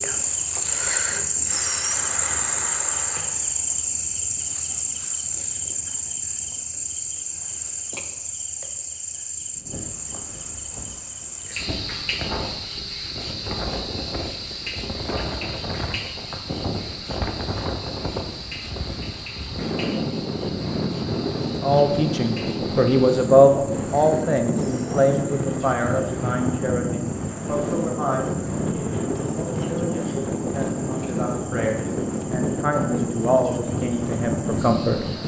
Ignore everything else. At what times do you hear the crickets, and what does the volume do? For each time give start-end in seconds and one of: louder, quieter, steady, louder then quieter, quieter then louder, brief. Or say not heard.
0.0-35.2 quieter.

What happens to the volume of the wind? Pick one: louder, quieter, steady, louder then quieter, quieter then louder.
louder.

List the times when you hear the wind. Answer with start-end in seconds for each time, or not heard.
9.5-35.2.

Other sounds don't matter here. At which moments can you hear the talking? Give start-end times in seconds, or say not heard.
21.4-35.0.